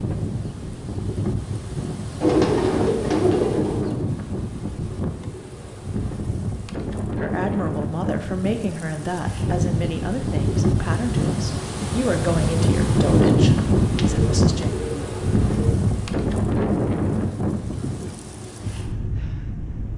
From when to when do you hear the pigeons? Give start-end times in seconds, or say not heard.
2.2-3.9, 13.9-15.8.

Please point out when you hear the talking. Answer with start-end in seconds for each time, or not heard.
7.2-14.7.